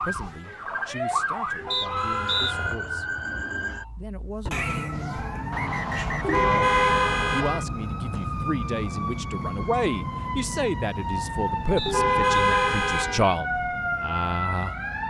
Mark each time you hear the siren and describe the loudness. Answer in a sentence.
The siren can be heard from 0.0 to 15.0 s, at a steady volume.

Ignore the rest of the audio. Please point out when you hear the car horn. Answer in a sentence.
You can hear the car horn from 1.6 to 2.8 s, from 6.2 to 7.7 s and from 11.8 to 13.2 s.